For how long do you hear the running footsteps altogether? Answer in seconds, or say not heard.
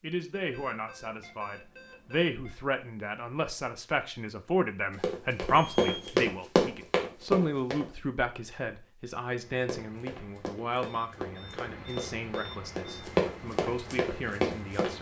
8 s.